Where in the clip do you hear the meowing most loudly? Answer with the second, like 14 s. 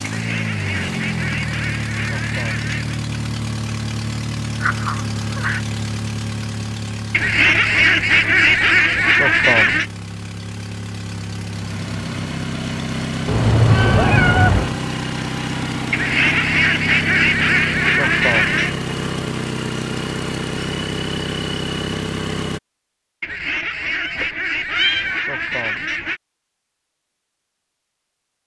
14 s.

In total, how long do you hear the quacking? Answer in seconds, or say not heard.
12 s.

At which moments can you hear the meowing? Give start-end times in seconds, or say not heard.
4.6-5.6, 13.2-14.8, 24.0-25.2.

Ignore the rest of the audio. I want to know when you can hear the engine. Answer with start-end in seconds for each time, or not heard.
0.0-22.6.